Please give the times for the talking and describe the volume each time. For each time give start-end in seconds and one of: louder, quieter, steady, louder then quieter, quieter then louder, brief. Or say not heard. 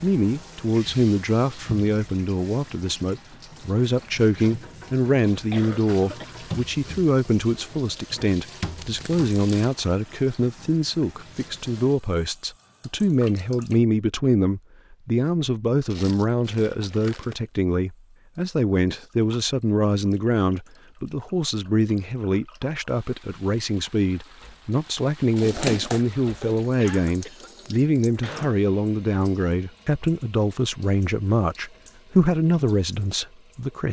0.0-33.8 steady.